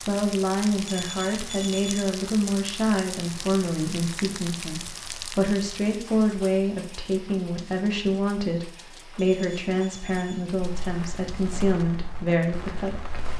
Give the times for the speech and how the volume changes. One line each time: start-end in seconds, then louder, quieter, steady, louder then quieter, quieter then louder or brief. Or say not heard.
0.1-13.2 steady.